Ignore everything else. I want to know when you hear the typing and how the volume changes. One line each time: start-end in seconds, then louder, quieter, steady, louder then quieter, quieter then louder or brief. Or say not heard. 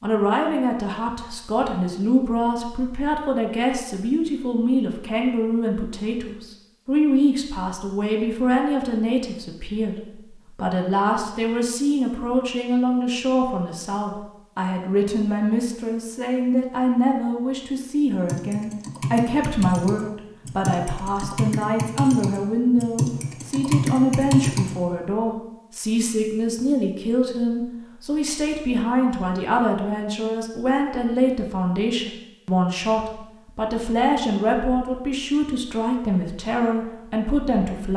18.1-24.8 louder.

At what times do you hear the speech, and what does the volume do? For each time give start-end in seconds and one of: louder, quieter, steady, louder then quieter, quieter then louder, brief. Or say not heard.
0.0-37.9 steady.